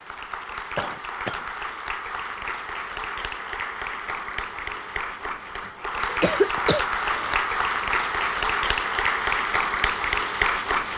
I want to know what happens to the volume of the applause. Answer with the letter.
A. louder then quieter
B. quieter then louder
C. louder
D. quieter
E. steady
C.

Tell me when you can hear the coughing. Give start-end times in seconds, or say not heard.
0.8-1.4, 6.0-7.4.